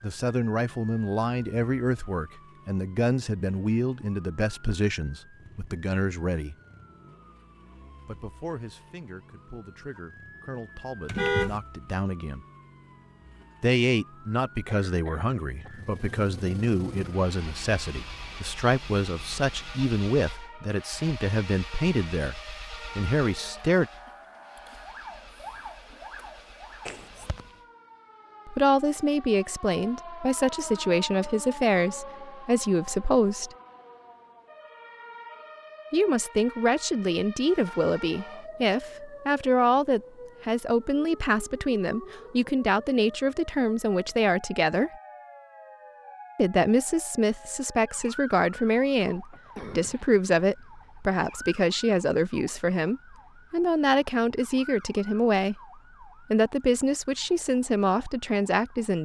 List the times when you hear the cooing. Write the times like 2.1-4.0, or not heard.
not heard.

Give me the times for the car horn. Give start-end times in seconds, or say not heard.
11.1-11.6.